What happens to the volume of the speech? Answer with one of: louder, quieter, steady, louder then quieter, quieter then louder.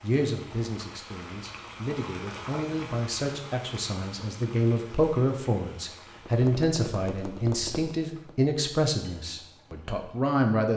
louder.